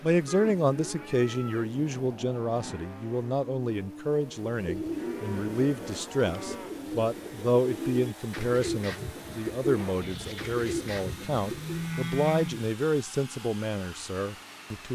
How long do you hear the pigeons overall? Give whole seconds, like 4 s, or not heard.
7 s.